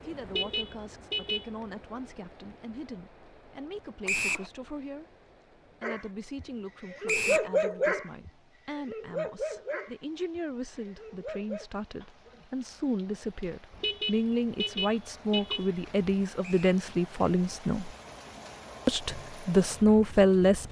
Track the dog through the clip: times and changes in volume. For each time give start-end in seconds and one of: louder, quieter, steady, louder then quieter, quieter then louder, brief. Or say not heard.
5.8-11.7 louder then quieter.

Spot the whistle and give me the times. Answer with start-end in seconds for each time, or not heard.
4.0-4.5, 7.0-7.5, 16.4-16.9.